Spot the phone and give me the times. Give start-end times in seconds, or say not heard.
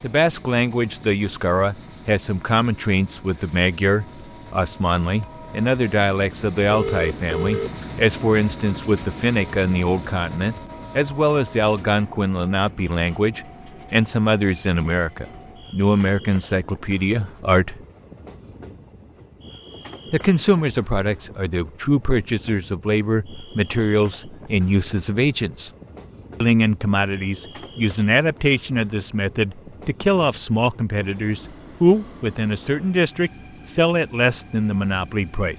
6.6-7.8.